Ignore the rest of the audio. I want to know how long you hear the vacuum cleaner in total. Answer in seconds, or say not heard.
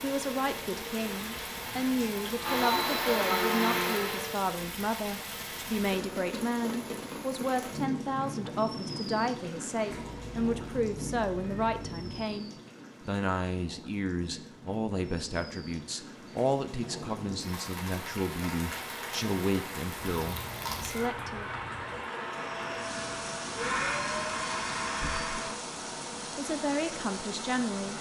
8 s.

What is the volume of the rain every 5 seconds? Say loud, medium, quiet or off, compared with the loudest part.
loud, loud, medium, loud, loud, loud.